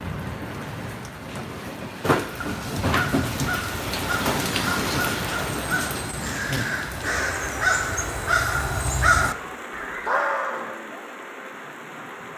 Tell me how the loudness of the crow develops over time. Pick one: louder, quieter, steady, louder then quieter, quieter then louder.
louder.